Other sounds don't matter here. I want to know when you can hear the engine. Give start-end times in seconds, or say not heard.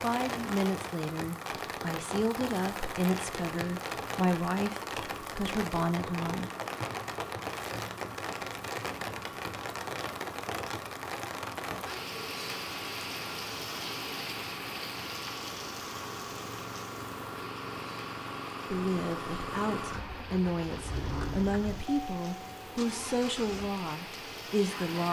0.1-25.0.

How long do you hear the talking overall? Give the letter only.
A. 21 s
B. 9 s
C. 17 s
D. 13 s
D.